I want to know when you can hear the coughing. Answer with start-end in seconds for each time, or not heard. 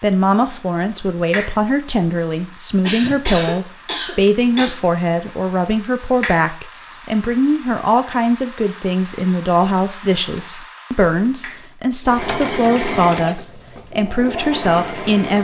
2.8-4.8.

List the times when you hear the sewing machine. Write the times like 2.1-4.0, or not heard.
12.1-15.3.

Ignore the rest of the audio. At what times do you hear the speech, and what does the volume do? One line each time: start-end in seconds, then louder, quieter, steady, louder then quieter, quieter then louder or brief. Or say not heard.
0.0-15.3 steady.